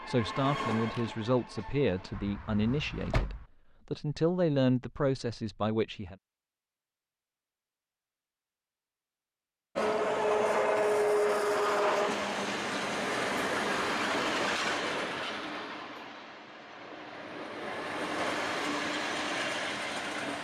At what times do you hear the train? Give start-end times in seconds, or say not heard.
0.0-2.2, 9.8-20.3.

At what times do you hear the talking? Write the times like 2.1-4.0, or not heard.
0.1-6.2.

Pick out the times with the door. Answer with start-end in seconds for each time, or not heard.
2.1-3.5.